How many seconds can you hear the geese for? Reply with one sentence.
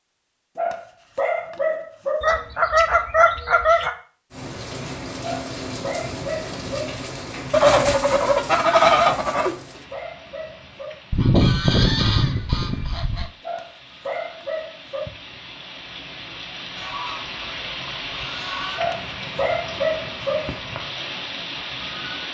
The geese can be heard for 8 seconds in total.